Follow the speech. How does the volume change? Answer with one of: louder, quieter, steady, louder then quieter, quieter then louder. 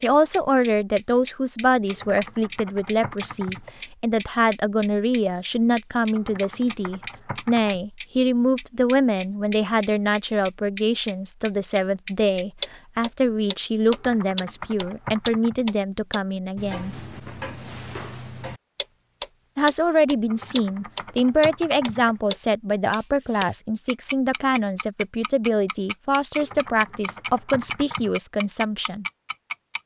steady.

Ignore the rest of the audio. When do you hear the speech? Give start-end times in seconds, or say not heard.
0.0-16.9, 19.6-29.1.